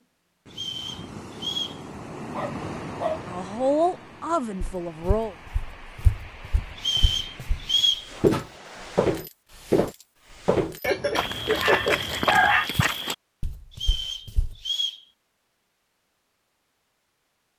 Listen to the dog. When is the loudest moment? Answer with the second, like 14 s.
12 s.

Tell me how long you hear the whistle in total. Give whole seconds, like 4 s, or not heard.
4 s.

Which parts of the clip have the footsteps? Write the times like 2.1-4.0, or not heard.
4.6-14.6.